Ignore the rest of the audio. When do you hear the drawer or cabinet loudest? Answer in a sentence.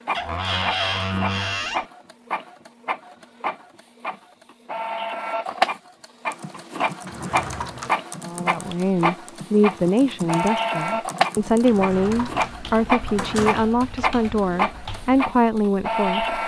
The loudest moment of the drawer or cabinet is at 1 second.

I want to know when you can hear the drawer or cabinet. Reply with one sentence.
The drawer or cabinet can be heard from 0.1 to 1.9 s, from 7.0 to 8.0 s and from 11.7 to 13.7 s.